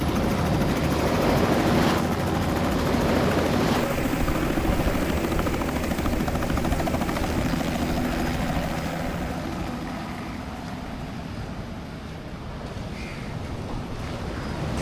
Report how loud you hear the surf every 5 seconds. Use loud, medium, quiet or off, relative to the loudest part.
loud, medium, medium.